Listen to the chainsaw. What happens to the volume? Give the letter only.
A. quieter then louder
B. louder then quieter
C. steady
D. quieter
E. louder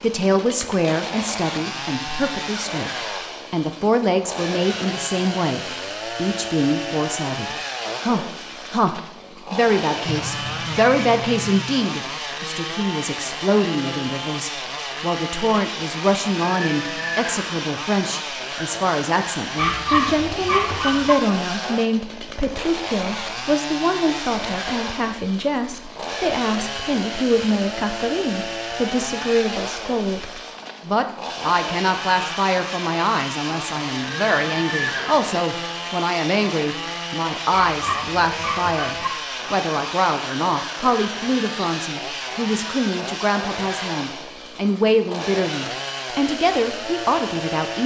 C.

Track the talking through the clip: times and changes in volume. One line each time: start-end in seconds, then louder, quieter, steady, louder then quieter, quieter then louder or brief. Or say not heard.
0.0-2.9 brief
3.5-47.8 steady.